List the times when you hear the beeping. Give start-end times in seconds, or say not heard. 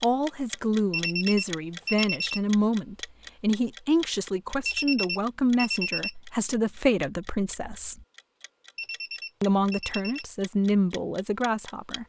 0.9-2.4, 4.7-6.2, 8.8-10.2.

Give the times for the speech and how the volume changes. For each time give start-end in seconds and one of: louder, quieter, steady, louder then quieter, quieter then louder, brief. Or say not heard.
0.0-8.1 steady
9.4-12.0 brief.